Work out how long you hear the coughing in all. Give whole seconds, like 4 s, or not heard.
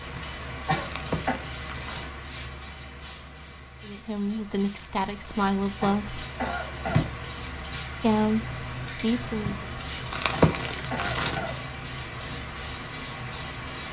3 s.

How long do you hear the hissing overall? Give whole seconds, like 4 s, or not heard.
14 s.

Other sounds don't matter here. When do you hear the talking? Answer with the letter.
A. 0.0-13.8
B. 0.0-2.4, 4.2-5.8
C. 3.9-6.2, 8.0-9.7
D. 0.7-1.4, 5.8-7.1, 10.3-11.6
C.